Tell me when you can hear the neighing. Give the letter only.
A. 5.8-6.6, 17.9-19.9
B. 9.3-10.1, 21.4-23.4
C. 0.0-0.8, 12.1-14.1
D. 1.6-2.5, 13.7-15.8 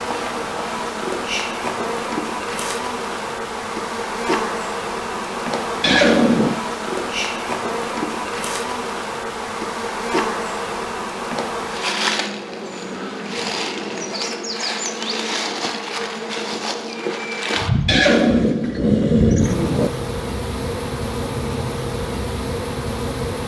A.